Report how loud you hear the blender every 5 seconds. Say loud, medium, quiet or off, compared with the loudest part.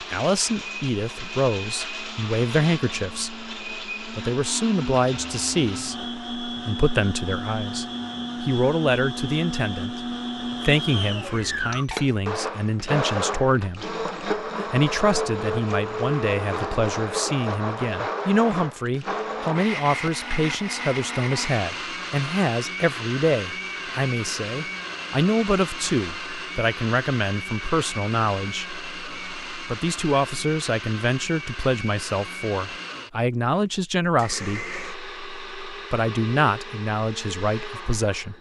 medium, loud, loud, loud, loud, medium, medium, medium.